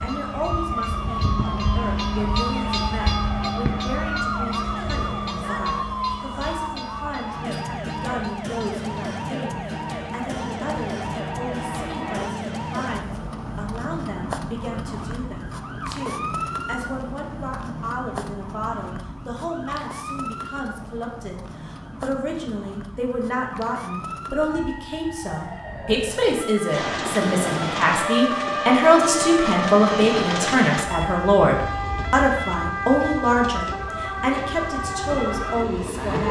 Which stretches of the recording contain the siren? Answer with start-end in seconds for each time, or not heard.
0.0-36.2.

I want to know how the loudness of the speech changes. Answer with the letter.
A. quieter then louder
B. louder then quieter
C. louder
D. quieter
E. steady
C.